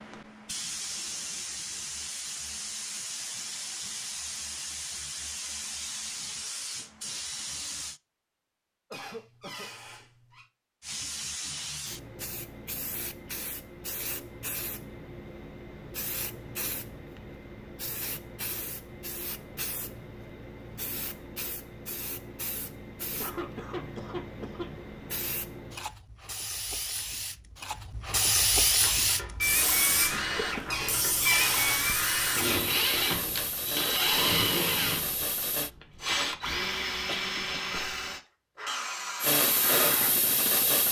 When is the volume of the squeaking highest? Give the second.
31 s.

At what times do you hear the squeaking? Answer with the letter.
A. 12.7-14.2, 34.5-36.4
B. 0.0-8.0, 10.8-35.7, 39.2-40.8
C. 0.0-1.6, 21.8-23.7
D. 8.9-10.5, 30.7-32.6
D.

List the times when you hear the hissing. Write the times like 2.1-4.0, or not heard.
0.0-8.0, 10.8-35.7, 39.2-40.8.